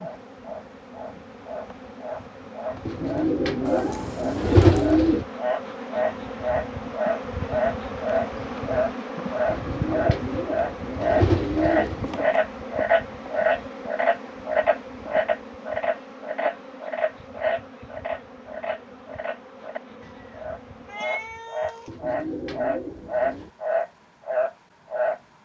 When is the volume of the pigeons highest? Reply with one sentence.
The volume of the pigeons peaks at 5 seconds.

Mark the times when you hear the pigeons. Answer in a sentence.
The pigeons can be heard from 2.9 to 5.2 s, from 9.5 to 12.2 s and from 21.9 to 23.5 s.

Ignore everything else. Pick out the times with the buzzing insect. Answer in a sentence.
The buzzing insect can be heard from 0.0 to 21.5 s.